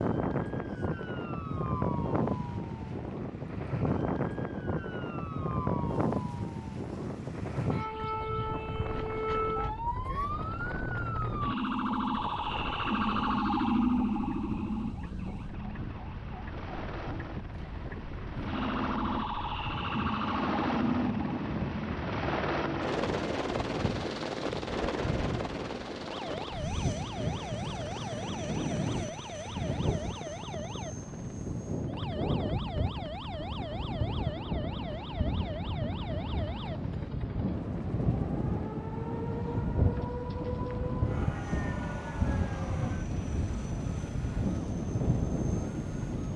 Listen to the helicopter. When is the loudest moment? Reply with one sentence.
The volume of the helicopter peaks at 23 seconds.